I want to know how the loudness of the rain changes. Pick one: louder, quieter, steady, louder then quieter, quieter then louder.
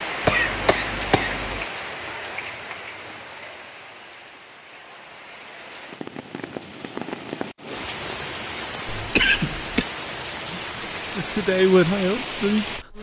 quieter then louder.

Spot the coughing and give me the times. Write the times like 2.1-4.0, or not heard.
0.2-1.6, 8.8-9.8.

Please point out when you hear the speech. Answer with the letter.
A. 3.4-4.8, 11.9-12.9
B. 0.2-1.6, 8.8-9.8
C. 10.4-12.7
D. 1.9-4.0
C.